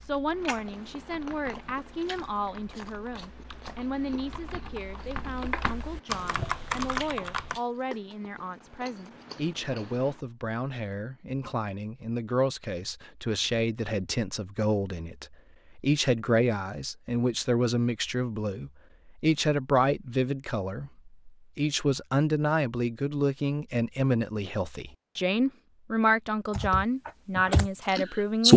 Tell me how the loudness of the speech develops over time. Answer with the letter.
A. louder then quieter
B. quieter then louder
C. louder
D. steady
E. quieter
C.